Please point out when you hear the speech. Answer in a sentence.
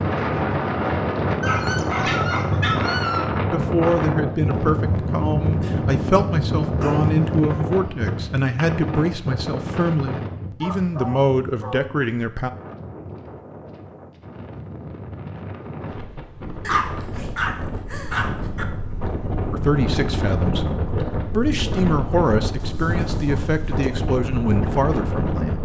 You can hear the speech from 3.5 to 12.5 s and from 19.5 to 25.6 s.